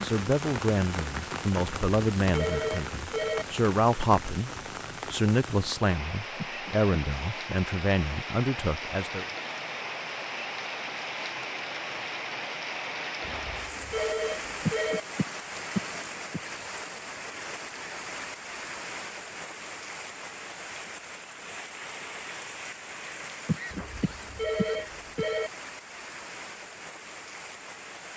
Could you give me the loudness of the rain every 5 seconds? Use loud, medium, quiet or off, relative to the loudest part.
loud, loud, loud, loud, medium, medium.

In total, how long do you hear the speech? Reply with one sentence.
The speech can be heard for 9 seconds in total.